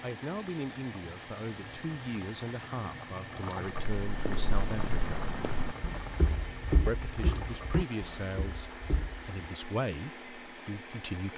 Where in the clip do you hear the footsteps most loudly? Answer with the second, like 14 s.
7 s.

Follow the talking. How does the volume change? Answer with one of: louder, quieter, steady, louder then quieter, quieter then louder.
steady.